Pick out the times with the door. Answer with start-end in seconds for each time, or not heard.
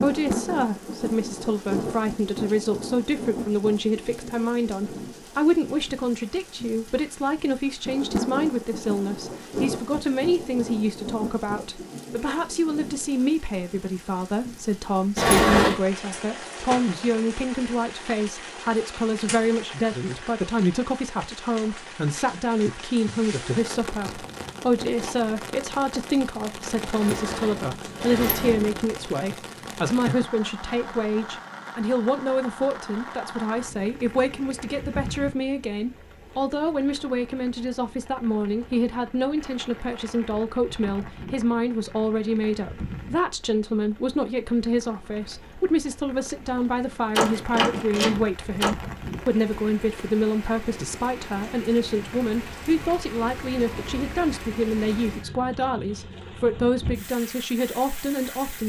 15.2-15.8, 26.9-28.9, 47.1-48.7.